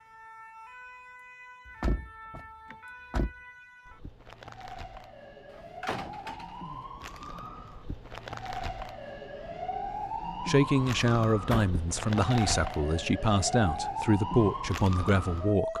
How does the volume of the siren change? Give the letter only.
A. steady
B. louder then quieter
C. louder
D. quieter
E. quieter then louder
C.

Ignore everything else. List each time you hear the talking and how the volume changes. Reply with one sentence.
You can hear the talking from 10.4 to 15.7 s, at a steady volume.